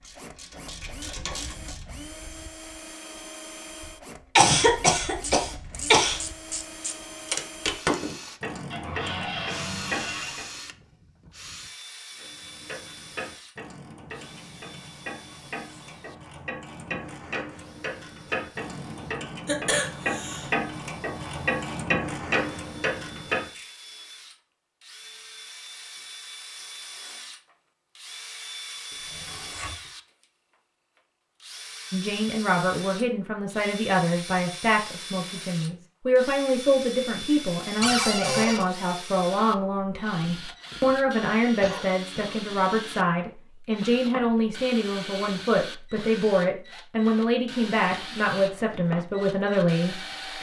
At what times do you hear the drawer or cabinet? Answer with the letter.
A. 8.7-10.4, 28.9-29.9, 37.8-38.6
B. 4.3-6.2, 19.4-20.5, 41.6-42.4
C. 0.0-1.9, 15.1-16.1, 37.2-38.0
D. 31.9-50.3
A.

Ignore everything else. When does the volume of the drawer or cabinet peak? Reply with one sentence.
The loudest moment of the drawer or cabinet is at 38 seconds.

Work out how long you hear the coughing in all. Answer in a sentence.
The coughing can be heard for 4 seconds in total.